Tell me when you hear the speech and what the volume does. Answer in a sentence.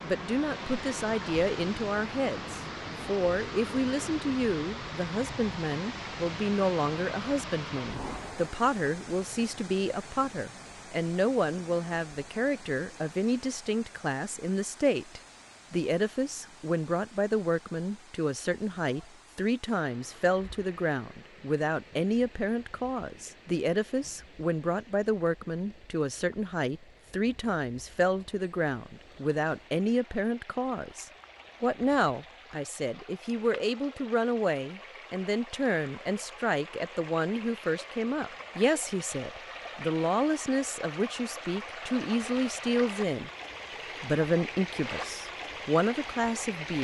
You can hear the speech from 0.0 to 43.3 s, at a steady volume; and briefly from 44.0 to 46.7 s.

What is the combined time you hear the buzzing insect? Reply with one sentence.
The buzzing insect can't be heard in this clip.